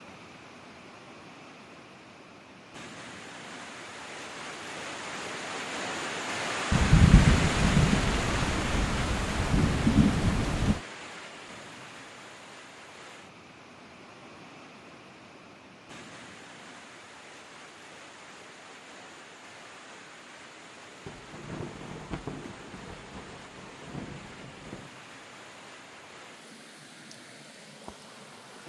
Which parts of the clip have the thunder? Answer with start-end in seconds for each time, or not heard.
6.7-10.8, 21.1-24.9.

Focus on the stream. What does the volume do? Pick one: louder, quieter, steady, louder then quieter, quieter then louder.
louder then quieter.